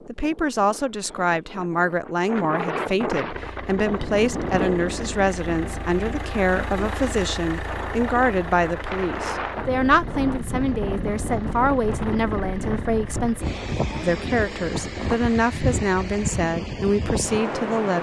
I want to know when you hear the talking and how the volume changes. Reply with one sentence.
You can hear the talking from 0.1 to 17.9 s, at a steady volume.